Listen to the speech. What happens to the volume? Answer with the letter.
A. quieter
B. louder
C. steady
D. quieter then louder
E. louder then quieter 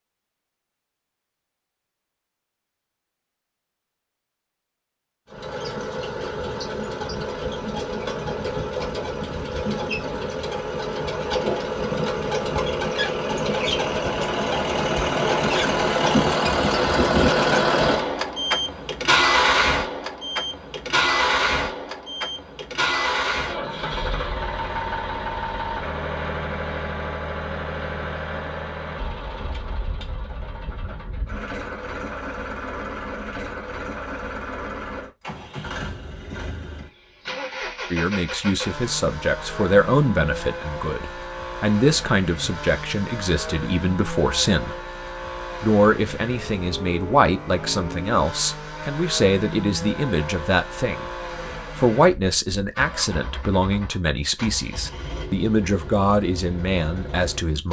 C.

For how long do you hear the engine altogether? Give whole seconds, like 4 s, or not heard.
52 s.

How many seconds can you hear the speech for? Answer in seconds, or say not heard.
18 s.